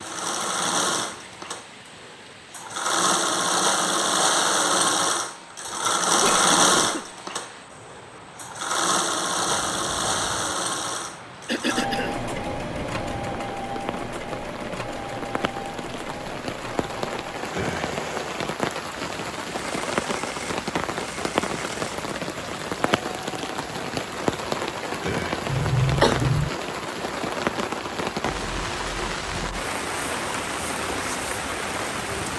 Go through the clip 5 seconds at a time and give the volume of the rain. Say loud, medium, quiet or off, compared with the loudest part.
quiet, quiet, medium, loud, loud, loud, loud.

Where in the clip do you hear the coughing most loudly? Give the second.
26 s.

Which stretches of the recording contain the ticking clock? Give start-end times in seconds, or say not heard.
not heard.